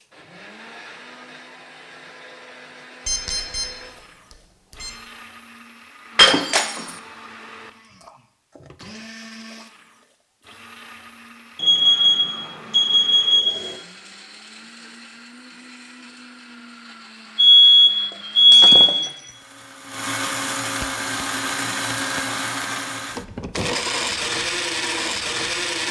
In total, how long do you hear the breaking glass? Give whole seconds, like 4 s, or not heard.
2 s.